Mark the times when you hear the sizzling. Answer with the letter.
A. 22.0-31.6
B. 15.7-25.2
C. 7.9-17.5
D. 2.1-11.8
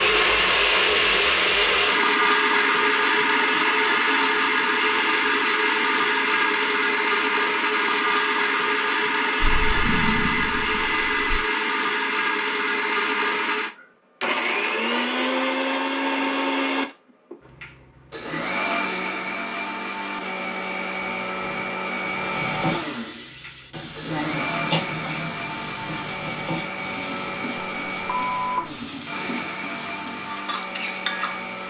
A.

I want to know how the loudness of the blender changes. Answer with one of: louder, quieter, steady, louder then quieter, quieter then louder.
quieter.